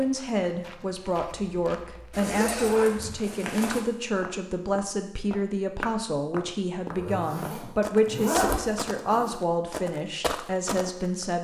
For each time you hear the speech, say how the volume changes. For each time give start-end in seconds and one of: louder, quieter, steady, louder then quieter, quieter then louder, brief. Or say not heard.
0.0-11.3 steady.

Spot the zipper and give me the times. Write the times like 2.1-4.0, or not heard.
2.1-3.9, 6.8-9.4.